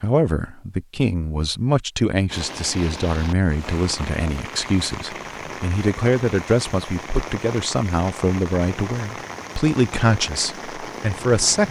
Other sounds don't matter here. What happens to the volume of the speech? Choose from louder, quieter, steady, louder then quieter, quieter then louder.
steady.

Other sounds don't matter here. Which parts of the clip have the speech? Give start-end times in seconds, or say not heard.
0.0-11.6.